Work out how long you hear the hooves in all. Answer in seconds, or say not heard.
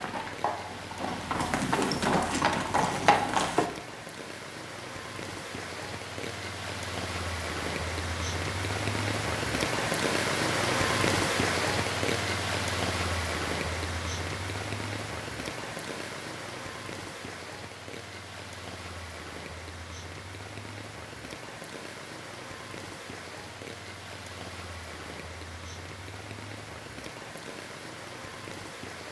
4 s.